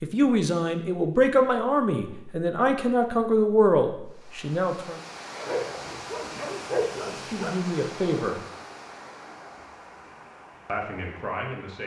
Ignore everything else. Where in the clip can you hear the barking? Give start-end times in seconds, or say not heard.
5.3-7.5.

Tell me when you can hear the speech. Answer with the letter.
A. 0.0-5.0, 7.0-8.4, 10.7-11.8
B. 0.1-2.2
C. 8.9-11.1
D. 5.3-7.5
A.